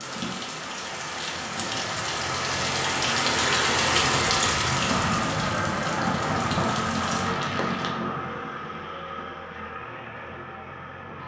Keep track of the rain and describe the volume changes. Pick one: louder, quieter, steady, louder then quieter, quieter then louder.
louder then quieter.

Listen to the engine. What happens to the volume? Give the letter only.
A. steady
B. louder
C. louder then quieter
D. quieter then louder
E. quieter
C.